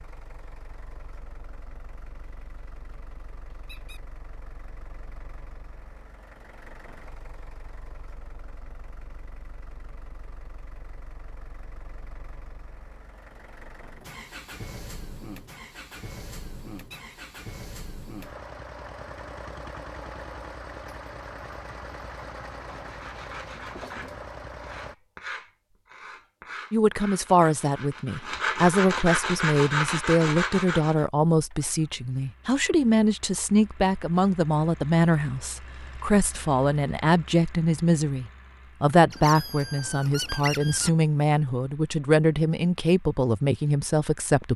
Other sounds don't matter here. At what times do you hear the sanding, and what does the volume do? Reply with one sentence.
You can hear the sanding from 22.9 to 31.1 s, getting louder.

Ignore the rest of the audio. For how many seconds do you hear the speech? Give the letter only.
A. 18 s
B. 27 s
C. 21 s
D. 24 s
A.